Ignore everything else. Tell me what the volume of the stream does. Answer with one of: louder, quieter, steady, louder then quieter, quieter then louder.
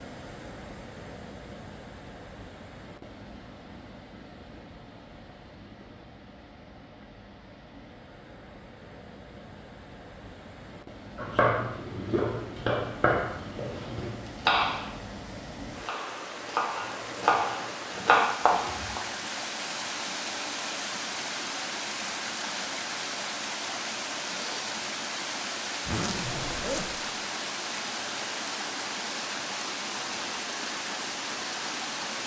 louder.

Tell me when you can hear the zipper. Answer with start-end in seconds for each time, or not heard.
25.9-27.0.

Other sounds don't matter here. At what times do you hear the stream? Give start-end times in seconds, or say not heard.
0.0-32.2.